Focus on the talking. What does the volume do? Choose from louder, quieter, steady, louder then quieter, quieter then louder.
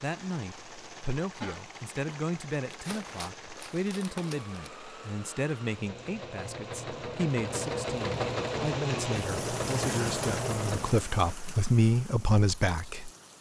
louder.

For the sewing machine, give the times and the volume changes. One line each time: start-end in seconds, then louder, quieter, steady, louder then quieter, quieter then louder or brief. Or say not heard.
0.0-11.1 louder.